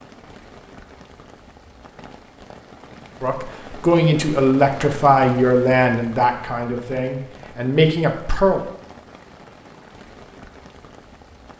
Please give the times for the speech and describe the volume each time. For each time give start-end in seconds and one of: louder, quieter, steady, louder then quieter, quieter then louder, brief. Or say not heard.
3.2-8.6 quieter then louder.